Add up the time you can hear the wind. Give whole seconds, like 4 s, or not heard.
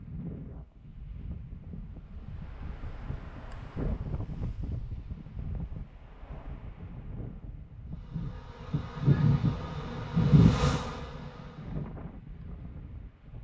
13 s.